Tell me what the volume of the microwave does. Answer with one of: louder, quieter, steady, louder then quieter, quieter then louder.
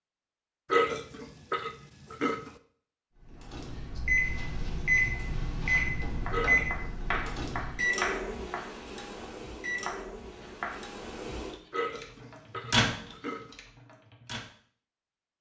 quieter then louder.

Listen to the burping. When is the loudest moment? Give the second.
1 s.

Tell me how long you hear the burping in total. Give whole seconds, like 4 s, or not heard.
5 s.